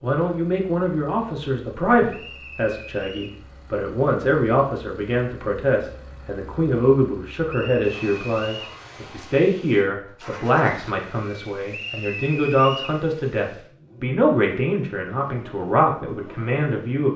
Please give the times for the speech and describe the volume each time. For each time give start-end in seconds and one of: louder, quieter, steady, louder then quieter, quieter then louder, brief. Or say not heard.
0.0-17.1 steady.